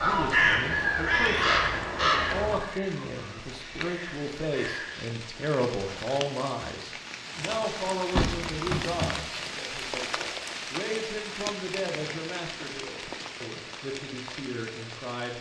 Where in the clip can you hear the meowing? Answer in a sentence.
The meowing can't be heard in this clip.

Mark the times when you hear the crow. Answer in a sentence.
The crow can be heard from 0.0 to 5.0 s.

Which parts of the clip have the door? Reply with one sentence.
You can hear the door from 8.1 to 9.2 s.